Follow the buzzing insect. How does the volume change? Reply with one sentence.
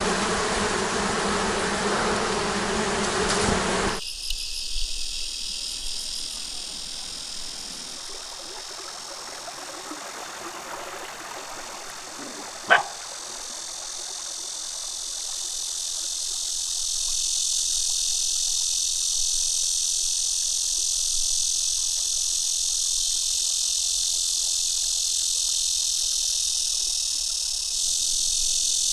The volume of the buzzing insect goes down, then up.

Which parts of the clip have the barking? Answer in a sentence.
The barking can be heard from 12.2 to 12.9 s.